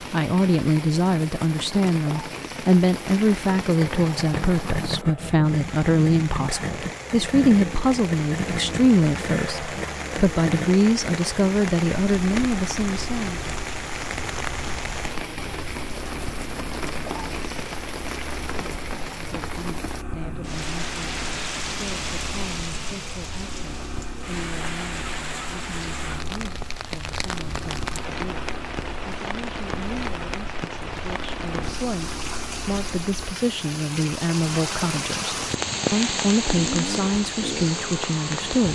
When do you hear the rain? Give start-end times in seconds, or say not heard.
0.0-38.7.